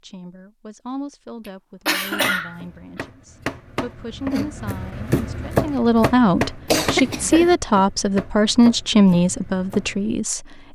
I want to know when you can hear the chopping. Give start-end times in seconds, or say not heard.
2.0-10.1.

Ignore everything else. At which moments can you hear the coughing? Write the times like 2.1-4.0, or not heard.
1.4-3.0, 6.7-7.5.